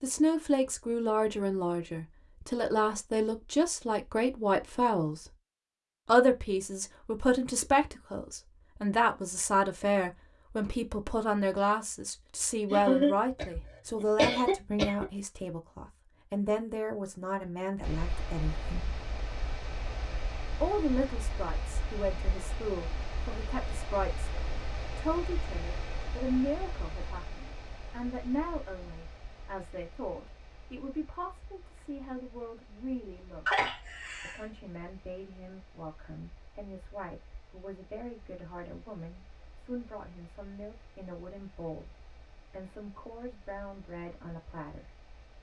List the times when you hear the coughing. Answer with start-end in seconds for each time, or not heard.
12.7-15.1, 33.5-34.5.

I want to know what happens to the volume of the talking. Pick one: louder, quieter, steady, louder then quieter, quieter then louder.
quieter.